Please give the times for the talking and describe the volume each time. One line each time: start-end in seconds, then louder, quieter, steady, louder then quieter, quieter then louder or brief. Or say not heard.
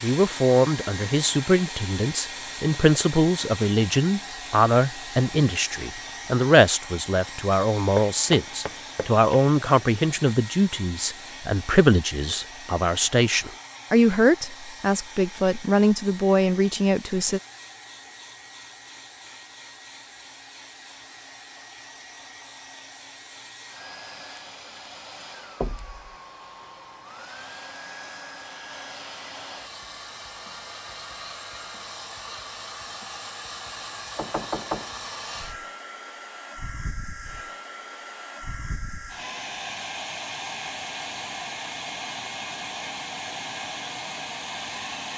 0.0-17.4 steady.